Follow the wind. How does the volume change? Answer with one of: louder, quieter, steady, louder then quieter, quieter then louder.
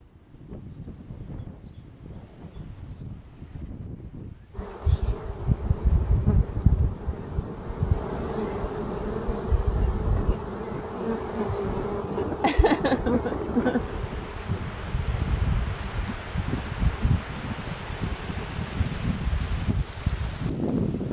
louder.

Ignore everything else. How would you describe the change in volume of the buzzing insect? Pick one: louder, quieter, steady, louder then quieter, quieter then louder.
quieter.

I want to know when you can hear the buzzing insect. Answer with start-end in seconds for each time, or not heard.
4.5-21.0.